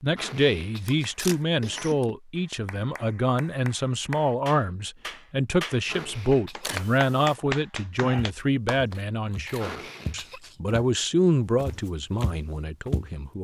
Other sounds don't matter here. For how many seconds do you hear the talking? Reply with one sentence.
The talking can be heard for 13 seconds in total.